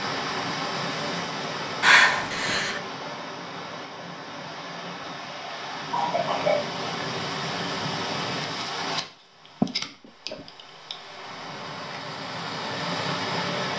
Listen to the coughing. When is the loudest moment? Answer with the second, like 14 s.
2 s.